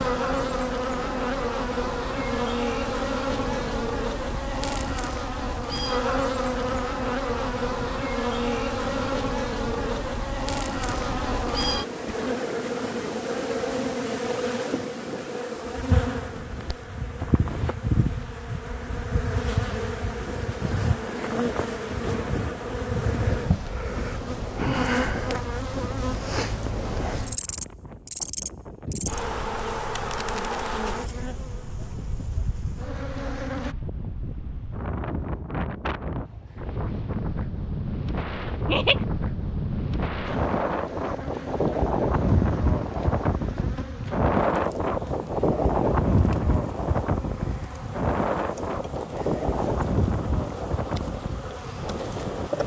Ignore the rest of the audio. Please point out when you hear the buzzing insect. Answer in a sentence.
The buzzing insect can be heard from 0.0 to 33.8 s and from 40.2 to 52.6 s.